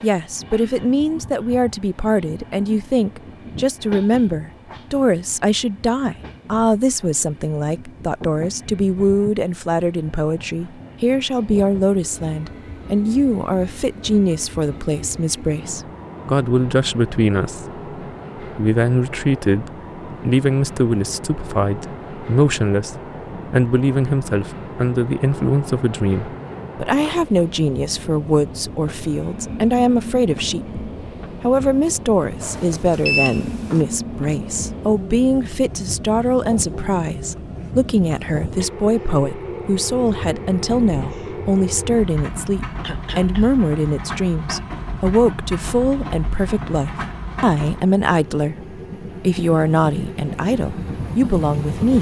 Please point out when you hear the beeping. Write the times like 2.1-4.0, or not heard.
32.4-33.9.